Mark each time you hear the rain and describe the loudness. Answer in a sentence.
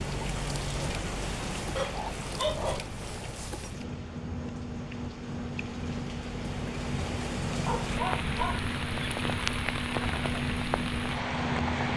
You can hear the rain from 0.0 to 11.9 s, getting quieter then louder.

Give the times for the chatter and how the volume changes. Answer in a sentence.
You can't hear the chatter here.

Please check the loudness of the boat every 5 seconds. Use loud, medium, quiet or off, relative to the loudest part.
medium, loud, loud.